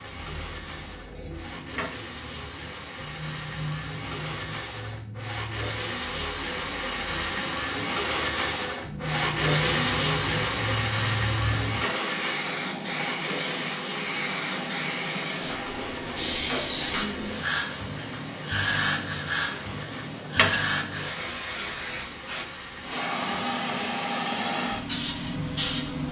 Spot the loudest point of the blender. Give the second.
10 s.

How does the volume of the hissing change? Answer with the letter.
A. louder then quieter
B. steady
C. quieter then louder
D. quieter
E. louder
E.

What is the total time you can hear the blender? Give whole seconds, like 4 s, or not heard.
26 s.